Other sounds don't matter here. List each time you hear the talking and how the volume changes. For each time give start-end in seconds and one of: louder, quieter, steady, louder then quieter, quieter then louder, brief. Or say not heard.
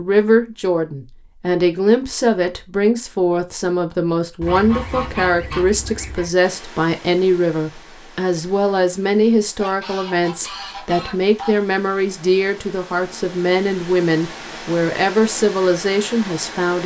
0.0-16.8 steady.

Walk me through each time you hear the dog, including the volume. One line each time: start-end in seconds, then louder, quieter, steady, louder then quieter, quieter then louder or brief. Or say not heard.
not heard.